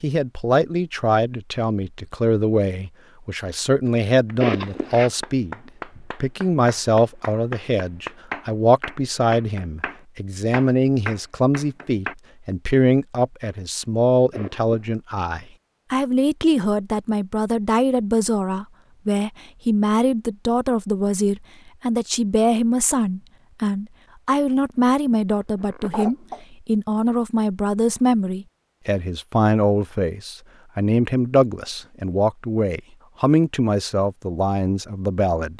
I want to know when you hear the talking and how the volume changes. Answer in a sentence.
You can hear the talking from 0.0 to 35.5 s, at a steady volume.